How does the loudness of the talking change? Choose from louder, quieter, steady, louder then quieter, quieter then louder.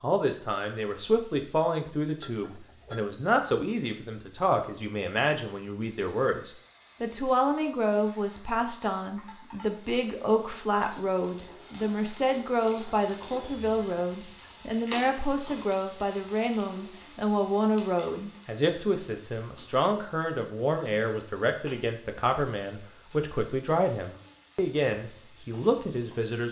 steady.